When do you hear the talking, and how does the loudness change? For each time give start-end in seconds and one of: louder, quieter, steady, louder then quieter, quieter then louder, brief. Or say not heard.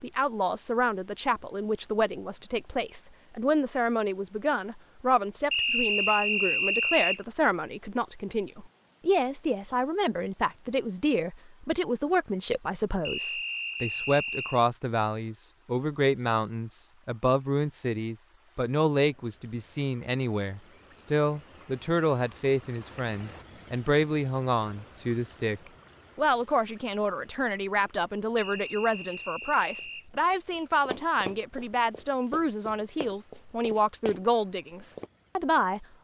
0.0-35.9 steady.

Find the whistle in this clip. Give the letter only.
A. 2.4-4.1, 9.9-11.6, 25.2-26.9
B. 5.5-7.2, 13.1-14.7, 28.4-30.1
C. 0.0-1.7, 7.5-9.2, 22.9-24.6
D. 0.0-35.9
B.